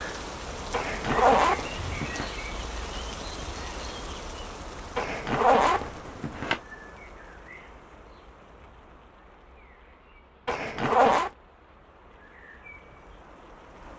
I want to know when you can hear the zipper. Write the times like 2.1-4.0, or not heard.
0.7-2.3, 5.0-6.6, 10.4-11.3.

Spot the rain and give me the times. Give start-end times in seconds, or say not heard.
0.0-13.9.